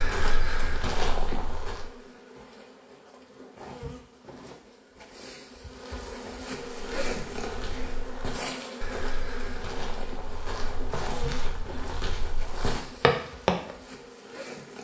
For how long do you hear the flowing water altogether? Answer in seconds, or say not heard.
not heard.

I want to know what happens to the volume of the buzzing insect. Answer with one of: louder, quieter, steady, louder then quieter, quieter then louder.
louder then quieter.